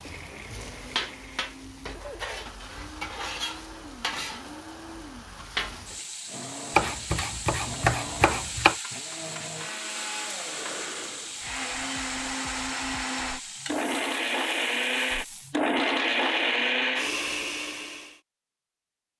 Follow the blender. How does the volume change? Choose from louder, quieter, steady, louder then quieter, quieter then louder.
louder.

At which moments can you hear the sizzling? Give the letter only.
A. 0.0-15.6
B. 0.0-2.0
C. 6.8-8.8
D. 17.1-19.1
A.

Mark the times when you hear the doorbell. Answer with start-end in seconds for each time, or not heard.
not heard.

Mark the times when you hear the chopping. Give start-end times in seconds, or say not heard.
6.8-8.8.